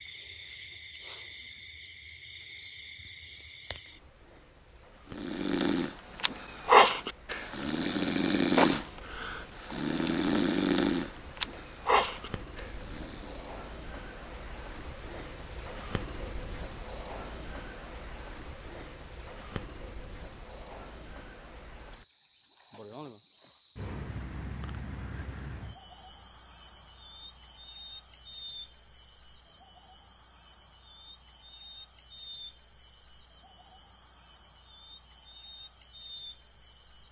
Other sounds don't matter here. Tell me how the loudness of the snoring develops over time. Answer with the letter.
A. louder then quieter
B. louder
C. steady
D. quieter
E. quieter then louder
D.